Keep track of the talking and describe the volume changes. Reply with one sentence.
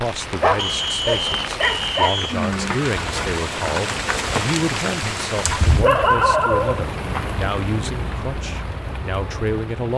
The loudness of the talking stays about the same.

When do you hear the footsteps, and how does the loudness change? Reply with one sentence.
The footsteps can't be heard in this clip.